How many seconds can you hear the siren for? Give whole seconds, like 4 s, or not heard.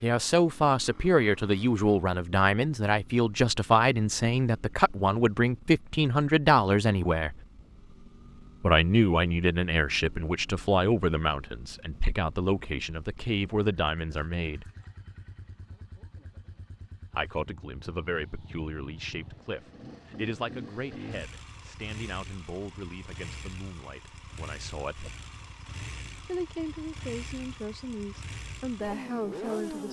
not heard.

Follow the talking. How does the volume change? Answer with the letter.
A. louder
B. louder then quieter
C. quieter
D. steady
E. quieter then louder
C.